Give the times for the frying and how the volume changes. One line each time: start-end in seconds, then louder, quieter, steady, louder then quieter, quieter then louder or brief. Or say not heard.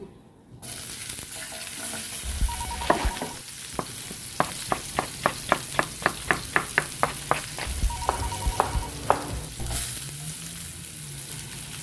0.0-11.7 steady.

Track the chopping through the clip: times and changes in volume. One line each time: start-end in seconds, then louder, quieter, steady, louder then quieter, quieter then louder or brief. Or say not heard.
2.6-9.8 louder then quieter.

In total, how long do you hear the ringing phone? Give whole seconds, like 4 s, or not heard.
2 s.